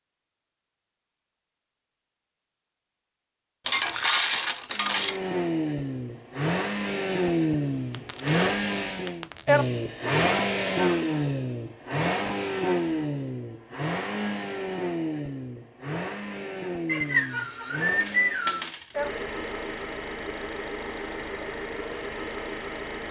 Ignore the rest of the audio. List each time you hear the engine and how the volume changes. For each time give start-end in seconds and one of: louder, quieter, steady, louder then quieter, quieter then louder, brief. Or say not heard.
4.7-23.0 quieter.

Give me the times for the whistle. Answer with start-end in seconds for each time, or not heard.
16.9-18.7.